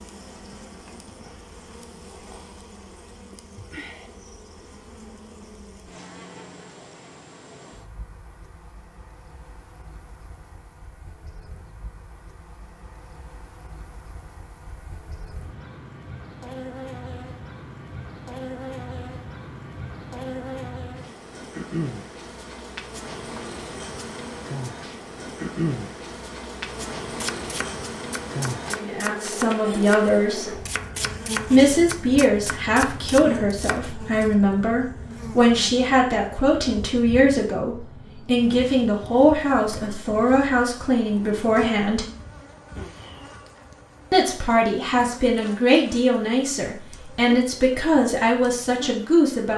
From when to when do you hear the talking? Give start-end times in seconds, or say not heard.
28.8-30.6, 31.5-42.0, 44.1-49.5.